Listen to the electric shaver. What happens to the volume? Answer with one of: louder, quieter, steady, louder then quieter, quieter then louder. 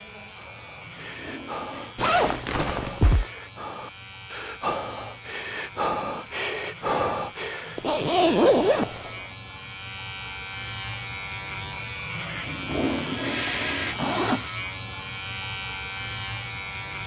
louder.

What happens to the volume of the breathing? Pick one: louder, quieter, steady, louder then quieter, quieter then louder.
louder.